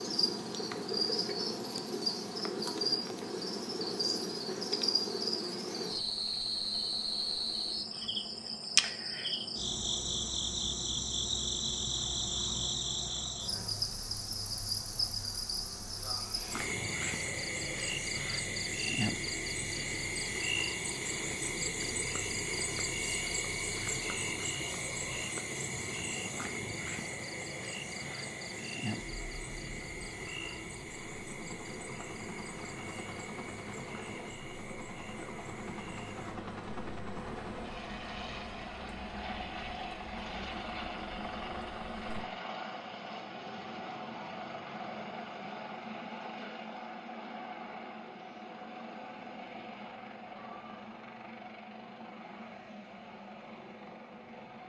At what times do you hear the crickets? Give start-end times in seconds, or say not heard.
0.0-42.3.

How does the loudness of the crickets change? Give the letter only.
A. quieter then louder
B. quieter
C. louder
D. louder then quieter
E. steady
B.